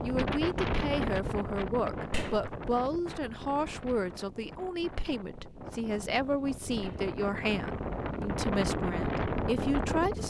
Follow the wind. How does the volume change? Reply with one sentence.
The volume of the wind goes down, then up.